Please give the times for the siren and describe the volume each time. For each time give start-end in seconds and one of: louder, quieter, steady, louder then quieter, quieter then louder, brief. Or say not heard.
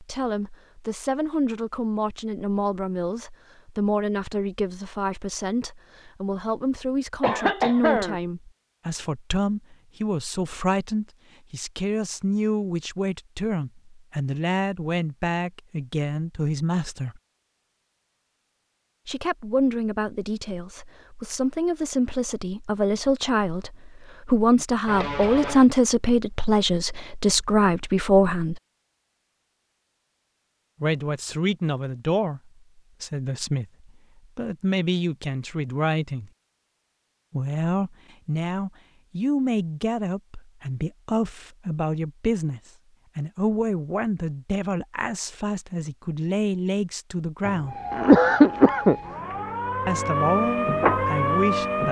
47.6-51.8 louder.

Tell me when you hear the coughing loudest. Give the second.
48 s.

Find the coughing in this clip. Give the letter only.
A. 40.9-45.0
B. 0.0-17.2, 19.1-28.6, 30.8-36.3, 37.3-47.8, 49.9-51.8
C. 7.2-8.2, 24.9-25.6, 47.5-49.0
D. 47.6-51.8
C.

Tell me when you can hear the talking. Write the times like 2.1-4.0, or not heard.
0.0-17.2, 19.1-28.6, 30.8-36.3, 37.3-47.8, 49.9-51.8.